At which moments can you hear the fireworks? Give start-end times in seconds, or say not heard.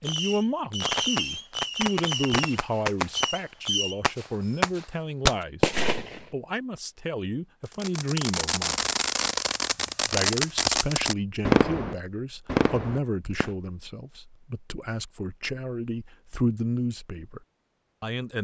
0.0-6.2, 7.7-13.6.